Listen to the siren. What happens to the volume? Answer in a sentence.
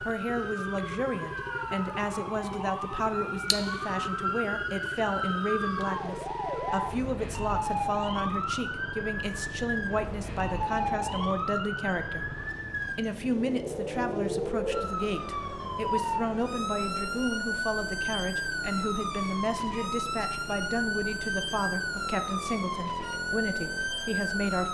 The volume of the siren stays about the same.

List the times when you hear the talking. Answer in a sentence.
You can hear the talking from 0.1 to 12.2 s and from 12.9 to 24.6 s.